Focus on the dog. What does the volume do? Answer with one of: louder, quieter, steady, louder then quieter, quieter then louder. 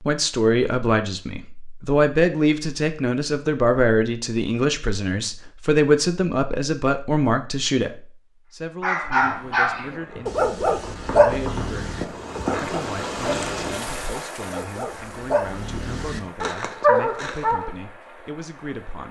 quieter then louder.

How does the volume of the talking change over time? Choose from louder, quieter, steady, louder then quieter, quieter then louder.
quieter.